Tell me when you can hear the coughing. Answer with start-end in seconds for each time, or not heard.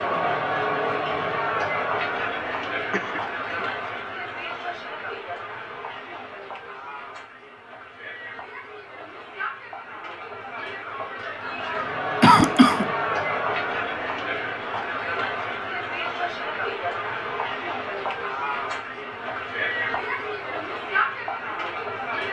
2.9-3.6, 12.2-12.9.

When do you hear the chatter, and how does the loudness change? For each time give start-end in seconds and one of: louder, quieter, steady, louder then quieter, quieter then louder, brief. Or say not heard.
0.0-22.2 quieter then louder.